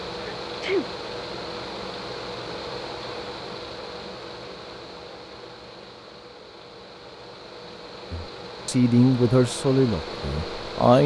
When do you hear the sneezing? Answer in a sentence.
The sneezing can be heard from 0.2 to 0.8 s.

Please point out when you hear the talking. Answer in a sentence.
You can hear the talking from 8.1 to 11.0 s.